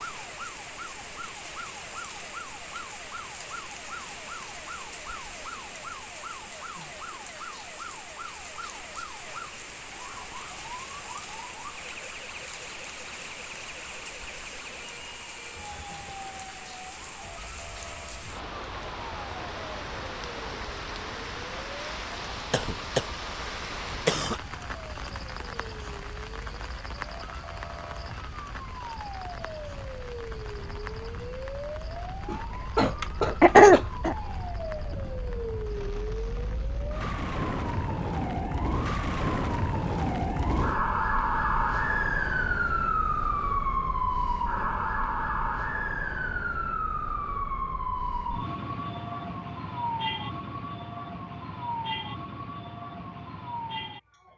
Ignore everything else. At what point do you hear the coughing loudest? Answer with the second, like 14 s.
34 s.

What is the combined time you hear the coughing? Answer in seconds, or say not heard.
4 s.